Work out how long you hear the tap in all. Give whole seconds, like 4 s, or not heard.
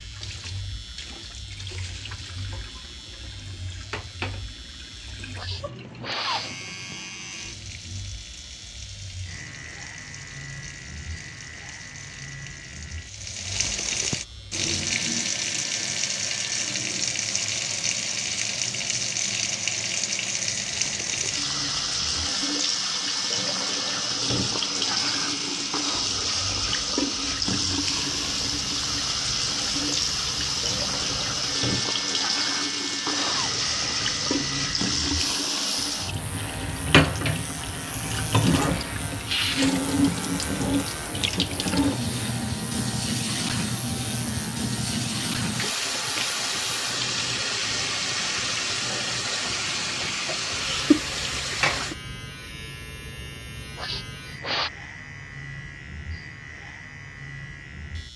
52 s.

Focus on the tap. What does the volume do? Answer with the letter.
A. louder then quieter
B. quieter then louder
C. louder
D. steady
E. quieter
C.